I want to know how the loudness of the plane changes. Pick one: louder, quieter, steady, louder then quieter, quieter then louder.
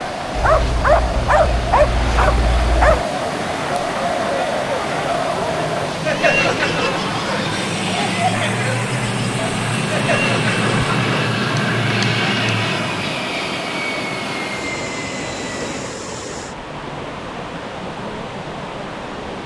louder then quieter.